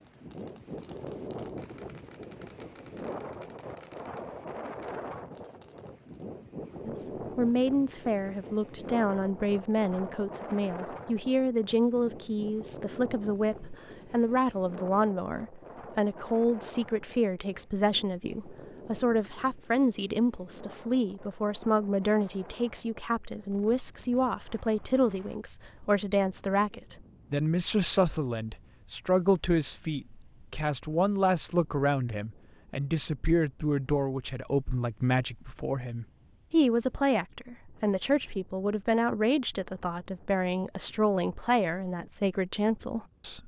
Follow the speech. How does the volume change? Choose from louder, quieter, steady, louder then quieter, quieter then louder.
steady.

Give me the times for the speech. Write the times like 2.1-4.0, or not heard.
6.8-43.4.